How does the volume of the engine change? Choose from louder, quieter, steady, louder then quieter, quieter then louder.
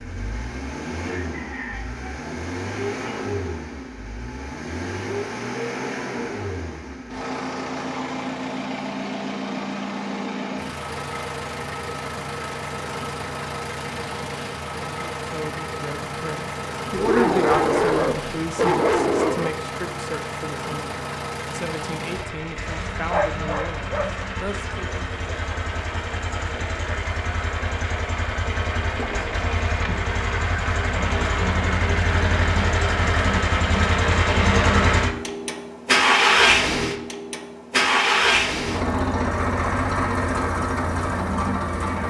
louder.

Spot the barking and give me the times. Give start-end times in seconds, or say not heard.
16.9-19.5, 23.1-24.6.